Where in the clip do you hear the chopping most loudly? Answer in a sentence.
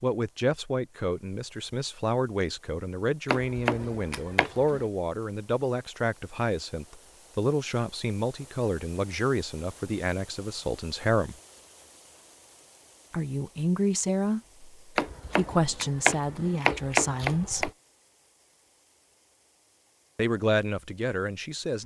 The volume of the chopping peaks at 17 seconds.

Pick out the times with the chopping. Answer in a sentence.
You can hear the chopping from 3.2 to 4.8 s and from 14.9 to 17.7 s.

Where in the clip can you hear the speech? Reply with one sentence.
The speech can be heard from 0.0 to 11.3 s, from 13.1 to 17.7 s and from 20.1 to 21.8 s.